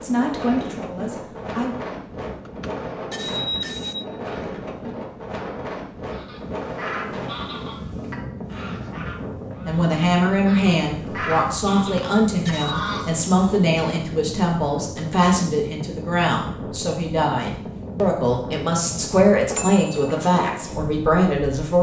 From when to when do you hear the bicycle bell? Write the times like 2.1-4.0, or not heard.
2.5-4.1, 11.8-12.8, 19.6-20.1.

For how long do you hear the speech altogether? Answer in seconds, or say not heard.
14 s.